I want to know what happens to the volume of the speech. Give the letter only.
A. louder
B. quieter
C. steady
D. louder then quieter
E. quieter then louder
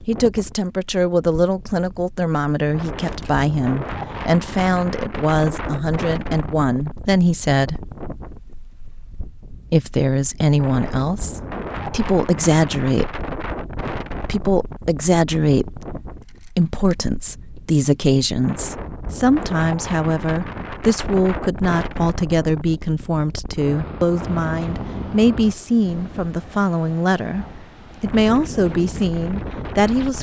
C.